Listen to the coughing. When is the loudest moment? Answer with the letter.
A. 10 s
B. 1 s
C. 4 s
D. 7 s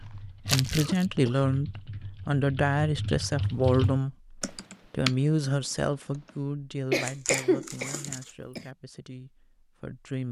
D.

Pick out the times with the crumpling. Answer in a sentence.
You can hear the crumpling from 0.5 to 1.1 s and from 7.0 to 8.3 s.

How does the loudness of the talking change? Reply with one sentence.
The loudness of the talking goes down.